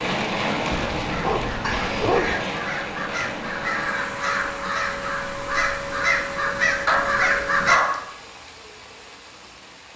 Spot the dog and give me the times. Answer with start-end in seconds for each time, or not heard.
0.7-2.4, 6.8-8.2.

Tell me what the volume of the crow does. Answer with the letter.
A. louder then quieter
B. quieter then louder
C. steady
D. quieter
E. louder
E.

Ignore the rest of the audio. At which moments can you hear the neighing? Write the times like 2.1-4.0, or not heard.
1.6-2.1.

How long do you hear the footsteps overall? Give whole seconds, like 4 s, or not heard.
not heard.